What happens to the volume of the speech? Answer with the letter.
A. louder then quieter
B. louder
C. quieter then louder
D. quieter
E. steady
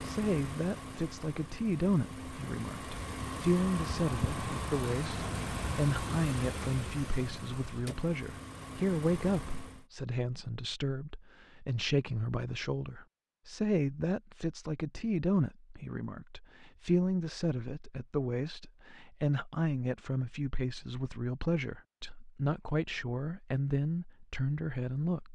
E.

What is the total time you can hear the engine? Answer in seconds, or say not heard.
10 s.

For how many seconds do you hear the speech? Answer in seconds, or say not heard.
25 s.